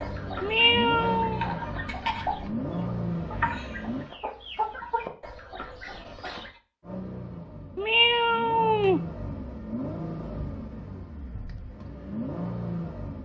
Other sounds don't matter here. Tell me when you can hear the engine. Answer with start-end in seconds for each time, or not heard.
0.0-4.0, 6.8-13.2.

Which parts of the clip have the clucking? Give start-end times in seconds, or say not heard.
0.0-6.5.